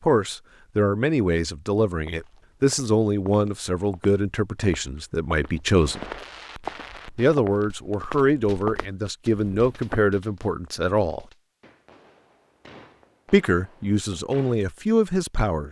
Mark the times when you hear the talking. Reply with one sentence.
The talking can be heard from 0.0 to 6.0 s, from 7.2 to 11.2 s and from 13.3 to 15.6 s.